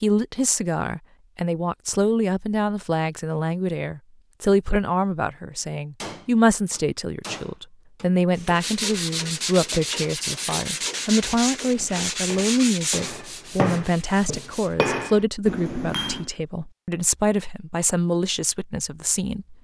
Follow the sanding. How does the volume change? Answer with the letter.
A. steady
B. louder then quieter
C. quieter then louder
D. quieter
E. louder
D.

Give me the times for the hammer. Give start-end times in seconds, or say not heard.
6.0-16.2.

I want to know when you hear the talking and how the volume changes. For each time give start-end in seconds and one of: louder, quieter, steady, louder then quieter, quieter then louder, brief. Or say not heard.
0.0-19.5 steady.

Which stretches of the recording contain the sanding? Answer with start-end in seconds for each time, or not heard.
8.6-14.8.